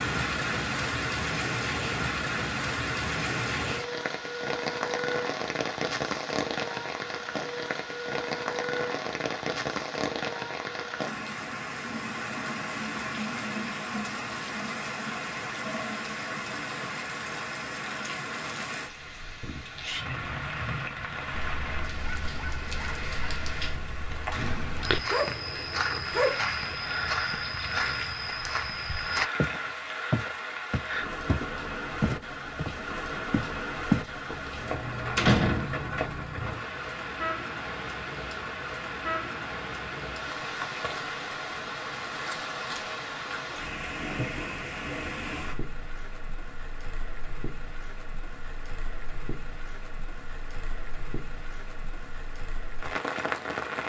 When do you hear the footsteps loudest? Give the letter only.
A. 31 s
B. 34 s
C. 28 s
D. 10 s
B.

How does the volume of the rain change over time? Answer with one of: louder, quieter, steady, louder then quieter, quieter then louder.
quieter.